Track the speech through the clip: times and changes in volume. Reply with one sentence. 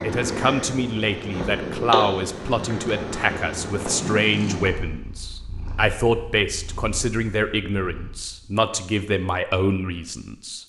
The speech can be heard from 0.0 to 10.6 s, at a steady volume.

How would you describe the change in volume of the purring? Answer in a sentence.
The volume of the purring goes down.